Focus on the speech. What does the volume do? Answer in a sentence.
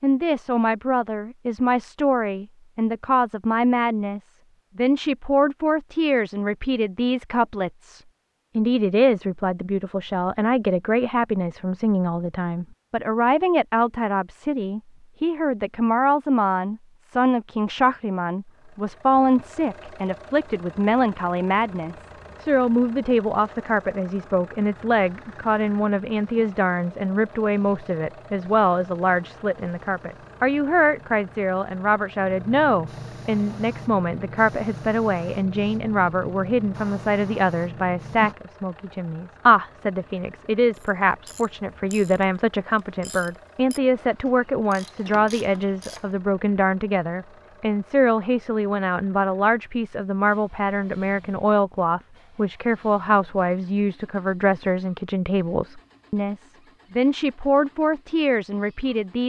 The volume of the speech stays about the same.